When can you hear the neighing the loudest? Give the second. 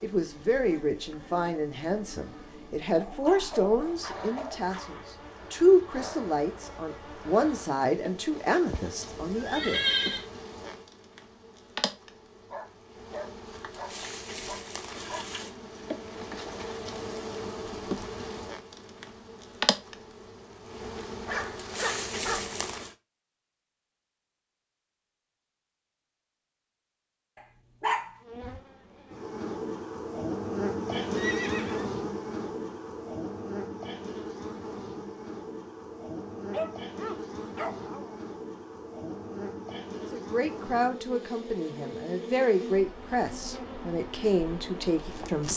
10 s.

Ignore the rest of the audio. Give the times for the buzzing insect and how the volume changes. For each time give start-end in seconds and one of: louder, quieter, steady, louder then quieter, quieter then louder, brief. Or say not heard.
0.0-22.9 louder
28.2-45.5 quieter.